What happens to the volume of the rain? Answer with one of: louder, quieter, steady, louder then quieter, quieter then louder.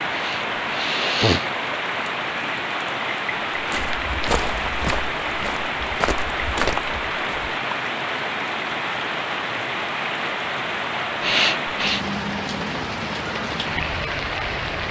steady.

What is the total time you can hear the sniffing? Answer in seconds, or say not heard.
2 s.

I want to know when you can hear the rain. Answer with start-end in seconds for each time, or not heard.
0.0-14.8.